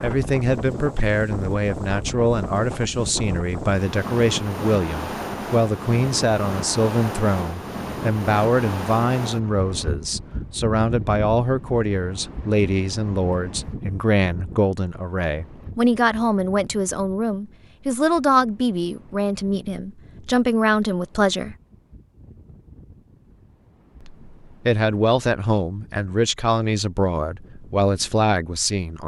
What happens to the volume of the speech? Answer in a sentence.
The loudness of the speech stays about the same.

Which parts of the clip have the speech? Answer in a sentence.
The speech can be heard from 0.0 to 21.6 s and from 24.0 to 29.0 s.